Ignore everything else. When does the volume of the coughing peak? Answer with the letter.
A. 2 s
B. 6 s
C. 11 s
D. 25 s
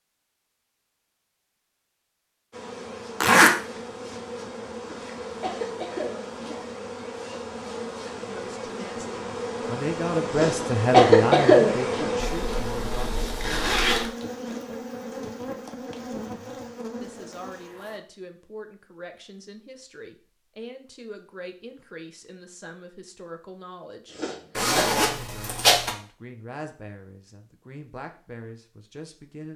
C.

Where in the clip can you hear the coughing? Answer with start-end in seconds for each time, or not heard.
4.8-6.6, 10.3-12.1, 24.1-24.9.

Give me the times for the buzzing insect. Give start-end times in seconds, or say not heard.
2.5-18.0.